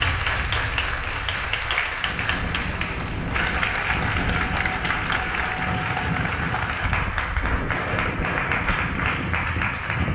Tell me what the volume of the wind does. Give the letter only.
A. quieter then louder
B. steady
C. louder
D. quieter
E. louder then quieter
C.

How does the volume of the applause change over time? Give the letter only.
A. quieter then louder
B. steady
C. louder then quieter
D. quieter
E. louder
B.